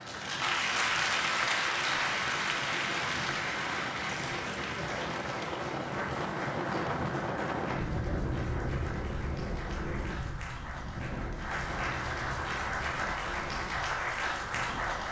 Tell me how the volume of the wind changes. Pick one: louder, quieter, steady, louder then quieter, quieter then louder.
louder then quieter.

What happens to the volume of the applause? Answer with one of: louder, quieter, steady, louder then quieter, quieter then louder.
quieter then louder.